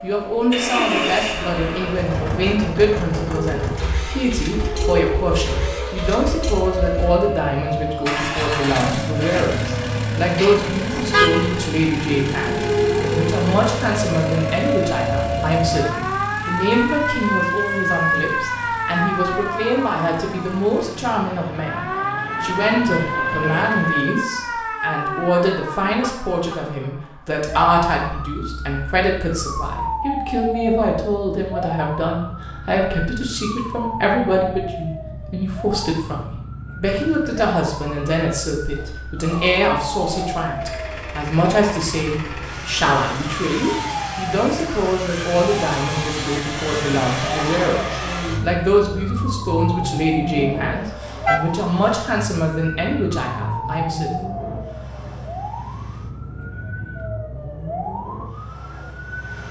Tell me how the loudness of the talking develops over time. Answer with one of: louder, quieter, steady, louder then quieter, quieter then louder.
steady.